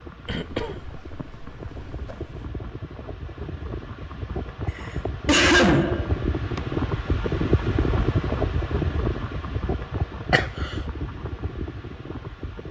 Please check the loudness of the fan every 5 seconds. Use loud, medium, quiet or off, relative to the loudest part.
medium, loud, medium.